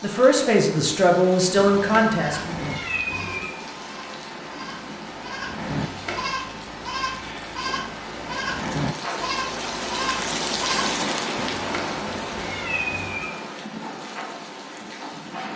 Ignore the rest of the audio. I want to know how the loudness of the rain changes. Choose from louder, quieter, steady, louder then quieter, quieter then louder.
louder then quieter.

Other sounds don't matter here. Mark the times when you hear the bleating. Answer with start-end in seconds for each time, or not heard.
2.1-11.0.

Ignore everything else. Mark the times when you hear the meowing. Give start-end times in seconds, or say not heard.
1.6-3.5, 5.7-6.3, 11.3-13.2.